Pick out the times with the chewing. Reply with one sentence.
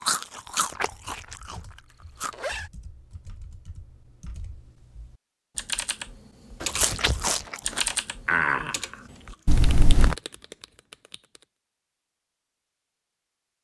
You can hear the chewing from 0.0 to 2.4 s and from 6.7 to 9.6 s.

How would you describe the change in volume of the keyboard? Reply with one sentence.
The volume of the keyboard goes up, then down.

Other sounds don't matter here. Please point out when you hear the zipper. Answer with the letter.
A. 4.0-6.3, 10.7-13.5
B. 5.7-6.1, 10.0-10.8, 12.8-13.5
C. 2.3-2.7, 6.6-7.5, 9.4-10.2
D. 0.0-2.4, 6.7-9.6
C.